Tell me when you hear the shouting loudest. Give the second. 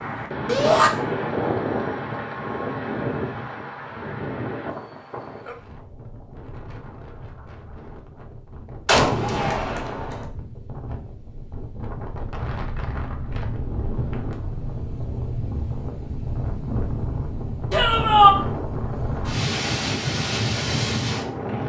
18 s.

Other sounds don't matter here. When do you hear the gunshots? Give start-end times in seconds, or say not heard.
8.8-10.2.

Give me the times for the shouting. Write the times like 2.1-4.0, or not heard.
0.5-0.9, 9.2-9.8, 17.7-18.4.